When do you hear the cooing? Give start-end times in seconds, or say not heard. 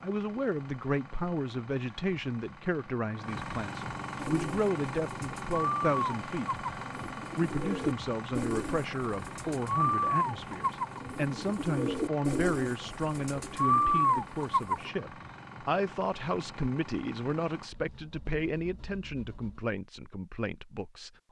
4.2-14.9.